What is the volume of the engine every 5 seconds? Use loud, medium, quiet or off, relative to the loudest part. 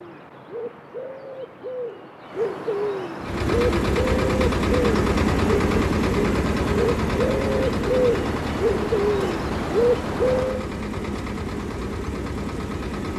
loud, loud, medium.